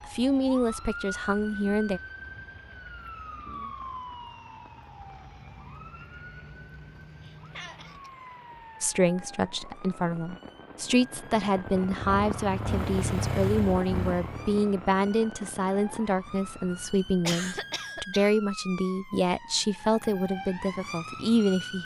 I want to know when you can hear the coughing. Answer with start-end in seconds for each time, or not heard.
7.2-8.1, 17.2-18.3.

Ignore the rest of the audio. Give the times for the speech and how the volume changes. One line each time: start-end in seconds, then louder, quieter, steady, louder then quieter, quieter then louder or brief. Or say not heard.
0.0-2.0 brief
8.8-21.7 steady.